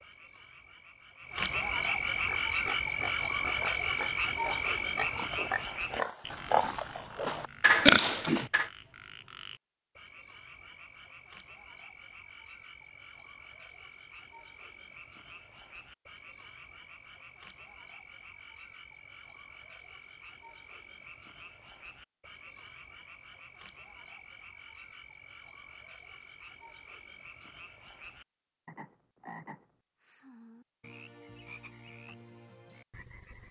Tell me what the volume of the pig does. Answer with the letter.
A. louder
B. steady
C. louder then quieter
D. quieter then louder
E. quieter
A.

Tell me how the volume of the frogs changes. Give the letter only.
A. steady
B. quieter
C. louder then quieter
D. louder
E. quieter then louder
B.